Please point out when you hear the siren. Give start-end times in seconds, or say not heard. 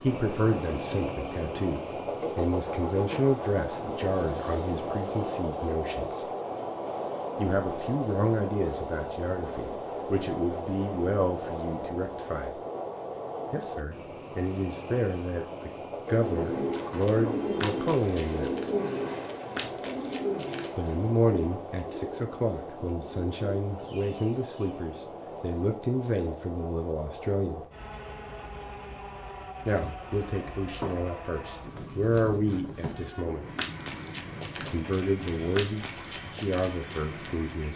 not heard.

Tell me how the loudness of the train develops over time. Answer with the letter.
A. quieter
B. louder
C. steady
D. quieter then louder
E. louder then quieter
A.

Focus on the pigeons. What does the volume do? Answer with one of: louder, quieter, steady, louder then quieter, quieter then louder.
quieter.